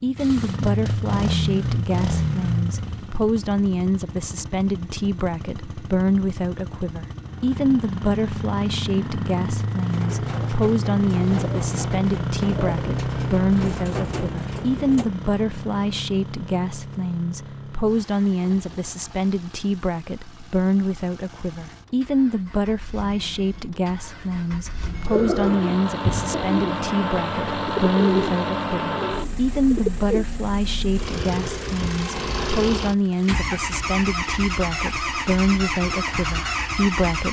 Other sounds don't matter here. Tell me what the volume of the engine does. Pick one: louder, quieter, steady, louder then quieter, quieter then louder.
quieter then louder.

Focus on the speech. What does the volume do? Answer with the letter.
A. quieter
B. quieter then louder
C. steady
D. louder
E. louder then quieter
C.